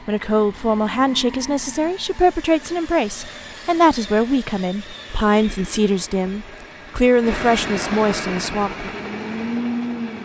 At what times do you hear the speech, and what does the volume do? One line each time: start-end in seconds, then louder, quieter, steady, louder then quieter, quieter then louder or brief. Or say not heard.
0.1-8.9 steady.